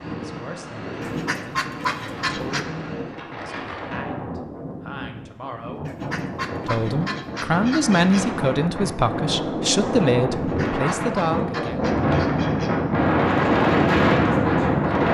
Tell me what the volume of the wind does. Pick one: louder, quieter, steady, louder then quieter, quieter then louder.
louder.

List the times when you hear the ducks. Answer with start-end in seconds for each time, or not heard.
1.0-2.6, 5.8-8.3, 10.3-12.8.